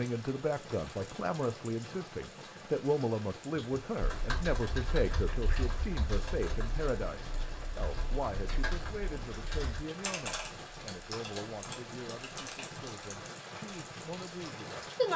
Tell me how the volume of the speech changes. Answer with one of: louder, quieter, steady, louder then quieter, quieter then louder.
quieter.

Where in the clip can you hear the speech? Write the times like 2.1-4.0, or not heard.
0.0-15.1.